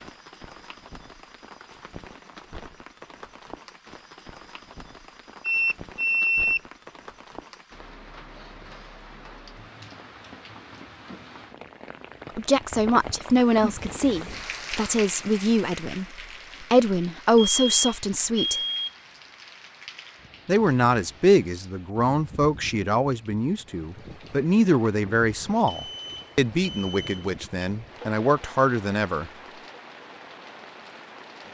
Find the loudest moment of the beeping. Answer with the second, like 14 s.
6 s.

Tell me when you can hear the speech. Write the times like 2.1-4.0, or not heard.
12.3-18.6, 20.4-29.3.